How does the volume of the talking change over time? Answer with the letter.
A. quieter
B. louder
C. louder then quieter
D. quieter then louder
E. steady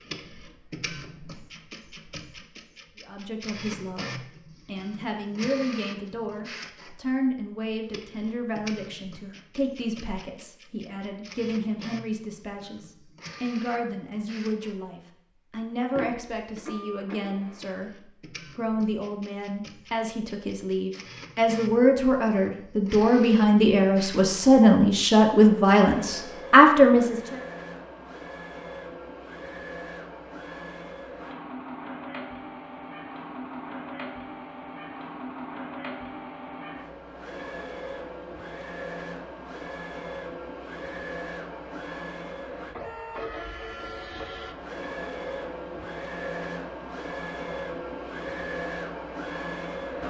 B.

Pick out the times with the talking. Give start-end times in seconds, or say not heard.
3.0-27.4.